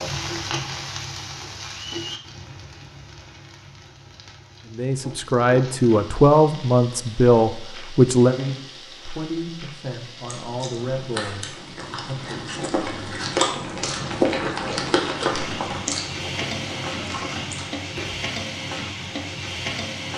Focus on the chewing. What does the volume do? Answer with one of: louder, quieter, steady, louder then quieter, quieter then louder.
louder then quieter.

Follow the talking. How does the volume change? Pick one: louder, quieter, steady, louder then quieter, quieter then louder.
quieter.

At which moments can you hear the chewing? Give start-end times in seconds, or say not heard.
10.2-18.3.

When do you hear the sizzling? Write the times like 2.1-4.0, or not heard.
0.0-20.1.